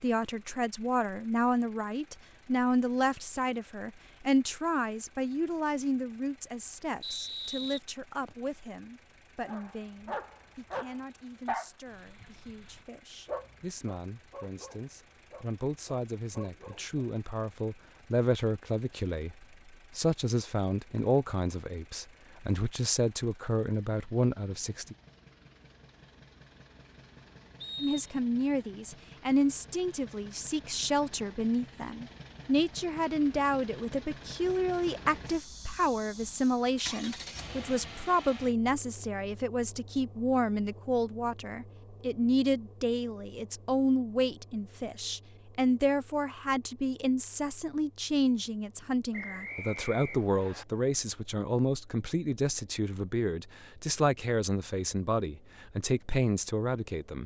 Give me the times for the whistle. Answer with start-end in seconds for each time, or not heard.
7.0-8.5, 27.6-28.2, 49.1-50.6.